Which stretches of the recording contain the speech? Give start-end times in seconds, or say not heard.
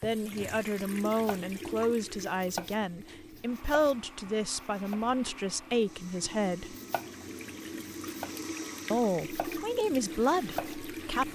0.0-6.8, 8.9-11.3.